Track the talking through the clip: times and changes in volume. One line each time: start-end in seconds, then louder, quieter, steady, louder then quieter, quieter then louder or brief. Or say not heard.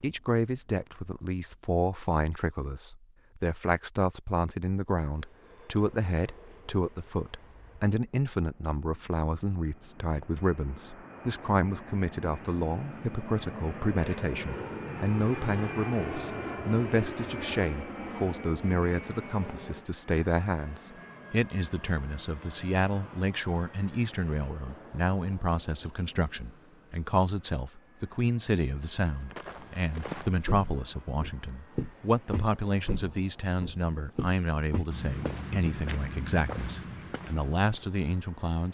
0.0-38.7 steady.